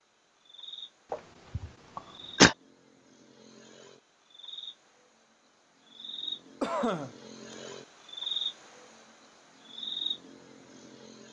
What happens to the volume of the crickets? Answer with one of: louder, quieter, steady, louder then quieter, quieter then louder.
quieter then louder.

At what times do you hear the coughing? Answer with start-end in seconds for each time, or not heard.
1.1-2.5, 6.6-7.5.